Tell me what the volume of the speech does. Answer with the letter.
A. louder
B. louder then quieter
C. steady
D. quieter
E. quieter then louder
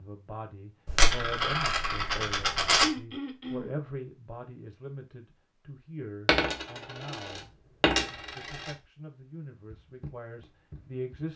D.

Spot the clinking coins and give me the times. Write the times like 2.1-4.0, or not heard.
0.8-2.9, 6.2-8.7.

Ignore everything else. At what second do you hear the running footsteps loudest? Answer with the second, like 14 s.
10 s.